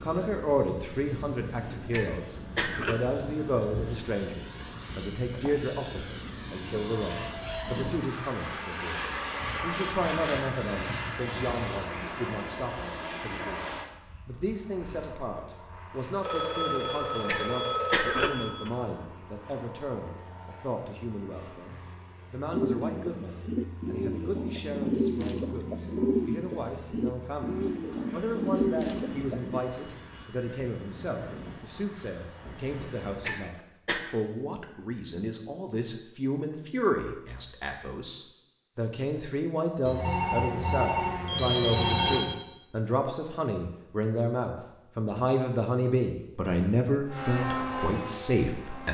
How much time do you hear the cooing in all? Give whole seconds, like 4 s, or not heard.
7 s.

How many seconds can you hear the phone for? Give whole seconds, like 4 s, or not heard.
5 s.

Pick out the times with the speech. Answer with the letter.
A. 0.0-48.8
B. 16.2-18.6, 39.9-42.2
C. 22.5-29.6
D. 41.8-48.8
A.